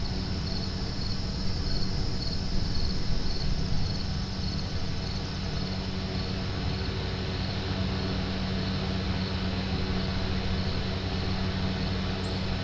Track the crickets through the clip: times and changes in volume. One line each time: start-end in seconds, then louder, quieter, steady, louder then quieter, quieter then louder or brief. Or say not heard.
0.0-12.5 quieter.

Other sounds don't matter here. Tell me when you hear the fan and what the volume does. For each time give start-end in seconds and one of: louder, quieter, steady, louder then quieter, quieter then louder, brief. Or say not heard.
0.0-12.5 louder.